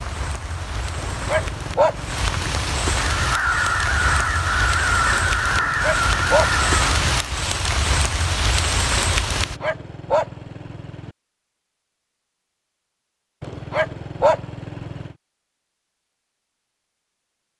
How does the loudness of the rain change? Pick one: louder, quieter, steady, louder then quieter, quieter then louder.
louder.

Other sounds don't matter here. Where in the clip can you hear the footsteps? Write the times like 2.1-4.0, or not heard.
not heard.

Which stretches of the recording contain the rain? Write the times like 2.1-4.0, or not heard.
0.0-9.6.